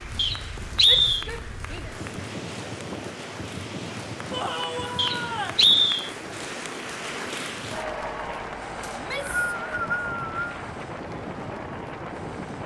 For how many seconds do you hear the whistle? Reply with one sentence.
You can hear the whistle for 4 seconds altogether.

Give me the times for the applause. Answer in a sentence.
You can hear the applause from 0.0 to 12.6 s.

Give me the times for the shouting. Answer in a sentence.
You can hear the shouting from 0.8 to 2.0 s, from 4.3 to 5.7 s and from 8.9 to 9.6 s.